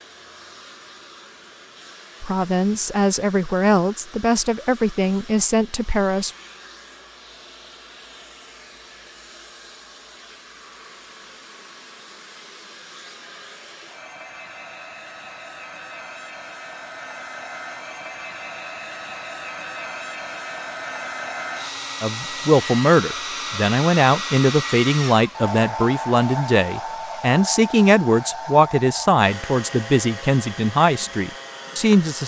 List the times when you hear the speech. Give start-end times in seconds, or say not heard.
2.2-6.3, 22.0-32.2.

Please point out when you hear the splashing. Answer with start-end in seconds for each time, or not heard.
not heard.